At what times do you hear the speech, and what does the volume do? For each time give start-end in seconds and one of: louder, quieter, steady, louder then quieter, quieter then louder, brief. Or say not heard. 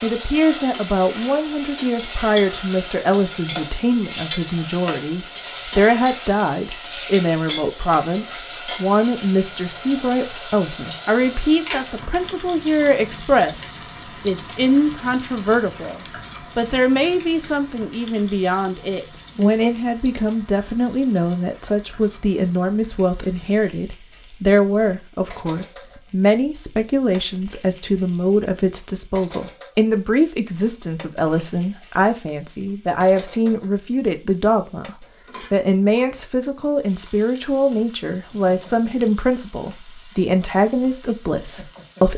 0.0-42.1 steady.